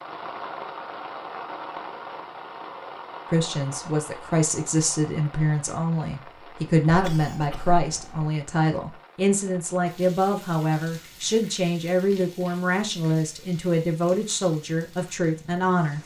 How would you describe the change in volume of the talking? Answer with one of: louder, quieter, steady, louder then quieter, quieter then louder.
steady.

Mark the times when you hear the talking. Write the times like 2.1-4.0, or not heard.
3.3-16.0.